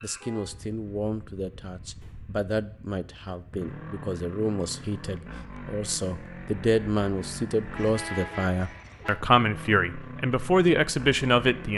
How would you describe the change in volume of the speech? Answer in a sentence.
The loudness of the speech goes up.